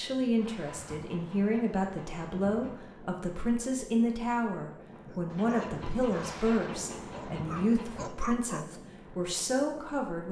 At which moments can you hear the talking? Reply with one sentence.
You can hear the talking from 0.0 to 10.2 s.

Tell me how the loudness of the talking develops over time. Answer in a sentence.
The volume of the talking stays about the same.